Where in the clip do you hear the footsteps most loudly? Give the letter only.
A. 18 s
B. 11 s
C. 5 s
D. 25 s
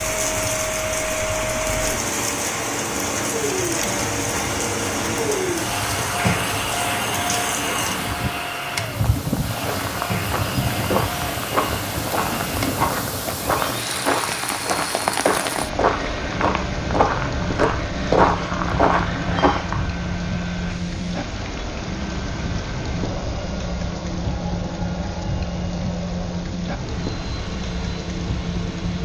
A.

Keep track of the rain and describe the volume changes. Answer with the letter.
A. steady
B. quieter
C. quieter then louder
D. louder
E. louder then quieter
A.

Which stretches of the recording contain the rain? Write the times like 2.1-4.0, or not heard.
0.0-29.0.